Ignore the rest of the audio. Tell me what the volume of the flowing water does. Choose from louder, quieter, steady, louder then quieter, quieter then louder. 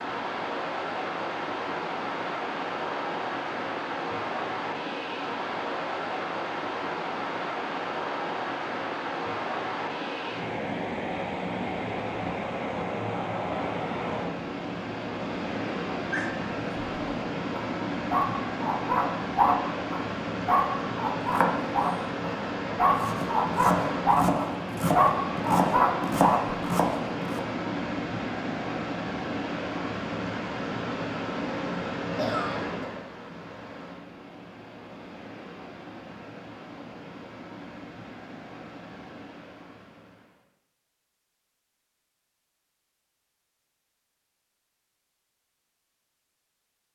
quieter.